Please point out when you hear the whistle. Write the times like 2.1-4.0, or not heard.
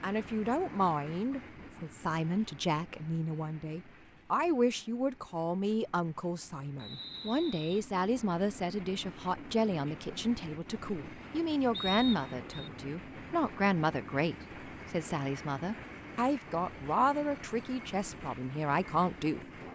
6.8-7.8, 11.7-12.7.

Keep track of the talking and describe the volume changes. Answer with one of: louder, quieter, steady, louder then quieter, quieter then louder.
steady.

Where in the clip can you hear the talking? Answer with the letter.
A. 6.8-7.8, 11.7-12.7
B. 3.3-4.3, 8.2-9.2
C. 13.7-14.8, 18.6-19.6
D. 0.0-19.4
D.